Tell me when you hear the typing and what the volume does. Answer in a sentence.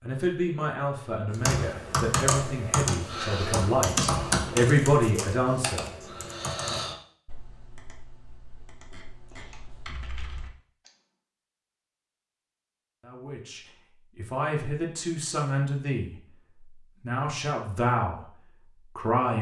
You can hear the typing from 1.3 to 10.9 s, getting quieter then louder.